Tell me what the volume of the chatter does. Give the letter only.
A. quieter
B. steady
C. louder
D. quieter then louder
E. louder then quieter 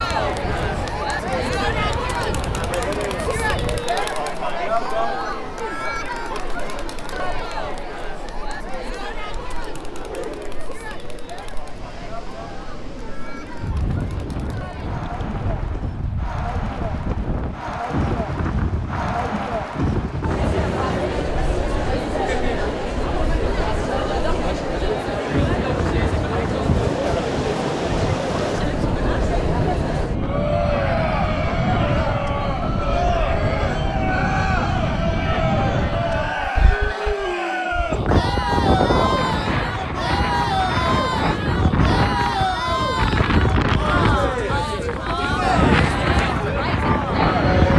D.